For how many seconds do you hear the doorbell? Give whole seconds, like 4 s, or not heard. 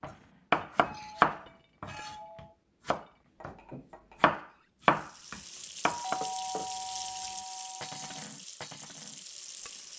4 s.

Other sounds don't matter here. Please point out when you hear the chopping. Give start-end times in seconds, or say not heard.
0.0-2.1, 2.9-6.2.